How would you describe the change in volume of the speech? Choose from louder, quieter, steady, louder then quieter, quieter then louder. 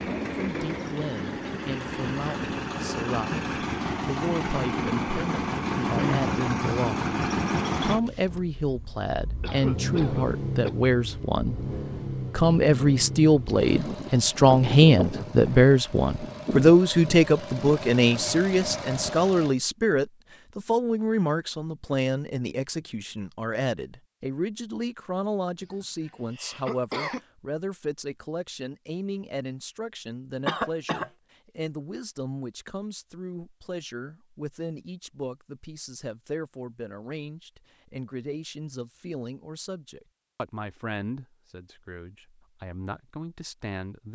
louder then quieter.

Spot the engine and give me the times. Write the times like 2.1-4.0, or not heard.
0.0-19.6.